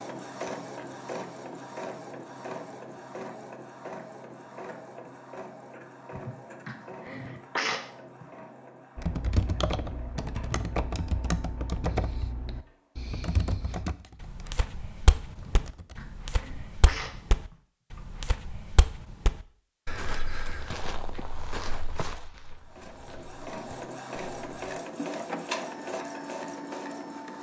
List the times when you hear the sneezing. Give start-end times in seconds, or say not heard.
6.1-8.2, 15.4-18.0.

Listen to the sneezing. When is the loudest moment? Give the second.
8 s.